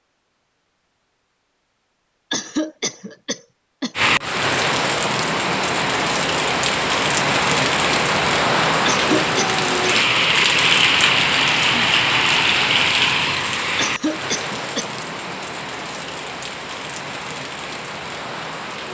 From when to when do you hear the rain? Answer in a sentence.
You can hear the rain from 4.0 to 18.9 s.